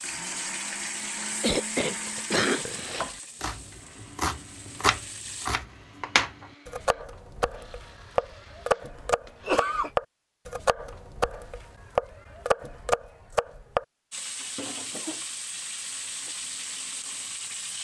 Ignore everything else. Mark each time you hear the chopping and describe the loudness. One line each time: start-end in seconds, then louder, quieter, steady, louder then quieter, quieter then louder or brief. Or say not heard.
2.8-13.8 steady.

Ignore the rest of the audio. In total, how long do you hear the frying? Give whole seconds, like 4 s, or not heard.
9 s.